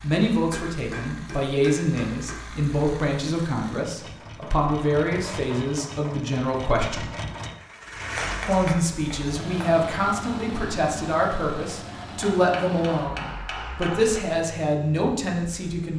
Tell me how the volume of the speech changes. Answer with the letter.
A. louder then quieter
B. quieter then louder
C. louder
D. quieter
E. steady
E.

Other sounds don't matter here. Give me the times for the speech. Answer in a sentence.
The speech can be heard from 0.0 to 7.0 s and from 8.4 to 15.9 s.